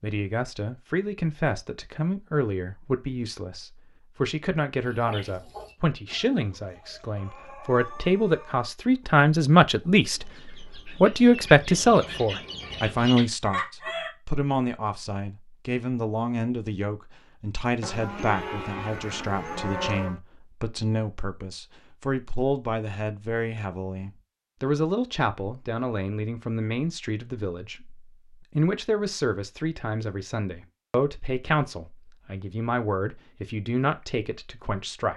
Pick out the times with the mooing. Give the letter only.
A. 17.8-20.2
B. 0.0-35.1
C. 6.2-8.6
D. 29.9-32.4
A.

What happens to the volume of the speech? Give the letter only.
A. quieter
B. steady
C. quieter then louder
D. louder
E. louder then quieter
E.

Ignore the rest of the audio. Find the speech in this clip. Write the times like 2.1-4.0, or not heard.
0.0-35.1.